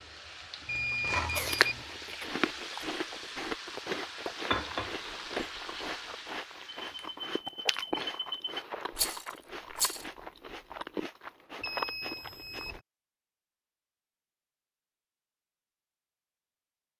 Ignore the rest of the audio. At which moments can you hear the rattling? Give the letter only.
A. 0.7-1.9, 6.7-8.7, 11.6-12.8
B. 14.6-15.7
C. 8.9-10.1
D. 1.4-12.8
C.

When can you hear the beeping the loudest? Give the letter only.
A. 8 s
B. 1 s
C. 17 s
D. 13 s
B.